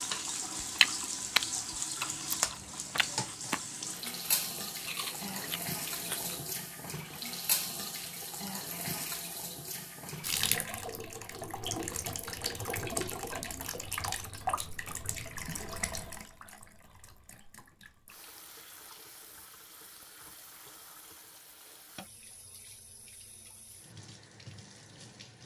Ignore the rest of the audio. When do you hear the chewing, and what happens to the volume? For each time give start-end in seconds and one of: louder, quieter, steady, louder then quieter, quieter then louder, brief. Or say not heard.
0.0-6.4 quieter then louder.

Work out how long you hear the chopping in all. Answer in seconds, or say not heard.
not heard.